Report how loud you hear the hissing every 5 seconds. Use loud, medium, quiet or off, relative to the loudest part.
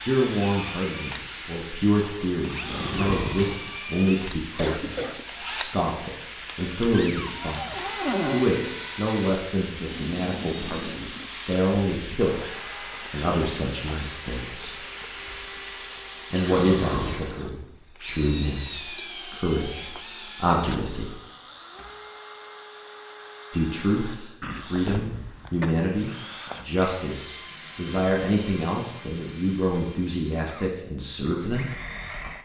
loud, loud, loud, loud, off, off, off.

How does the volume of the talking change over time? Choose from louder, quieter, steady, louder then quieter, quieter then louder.
steady.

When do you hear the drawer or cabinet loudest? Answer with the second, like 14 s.
8 s.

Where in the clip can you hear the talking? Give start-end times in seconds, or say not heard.
0.0-14.8, 16.3-21.1, 23.5-31.8.